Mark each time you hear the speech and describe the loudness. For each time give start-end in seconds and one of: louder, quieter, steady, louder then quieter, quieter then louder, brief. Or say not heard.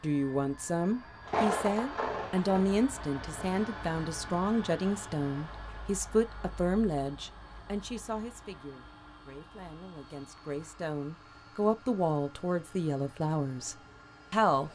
0.0-14.6 quieter then louder.